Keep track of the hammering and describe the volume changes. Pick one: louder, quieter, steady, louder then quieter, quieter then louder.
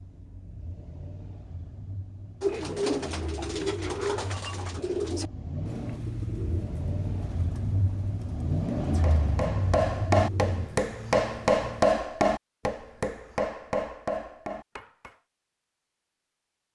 quieter.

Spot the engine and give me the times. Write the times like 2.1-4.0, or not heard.
0.0-10.7.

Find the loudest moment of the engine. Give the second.
9 s.